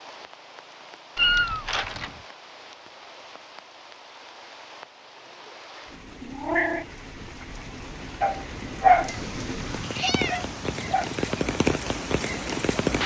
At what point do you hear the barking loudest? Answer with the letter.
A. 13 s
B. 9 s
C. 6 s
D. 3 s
B.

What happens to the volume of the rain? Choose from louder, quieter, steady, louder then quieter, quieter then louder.
louder.